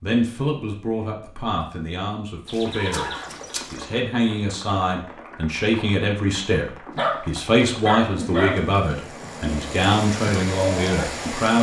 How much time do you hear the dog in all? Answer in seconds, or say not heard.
2 s.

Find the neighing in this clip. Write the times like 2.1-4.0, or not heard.
2.5-3.9.